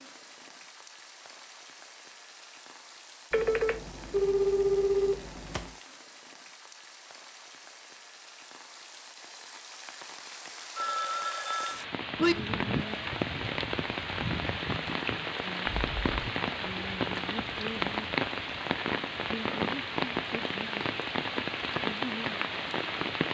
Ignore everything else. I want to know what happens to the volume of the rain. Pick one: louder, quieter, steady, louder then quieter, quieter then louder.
louder.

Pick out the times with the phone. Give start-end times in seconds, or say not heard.
3.3-5.7, 10.8-12.3, 15.7-16.2.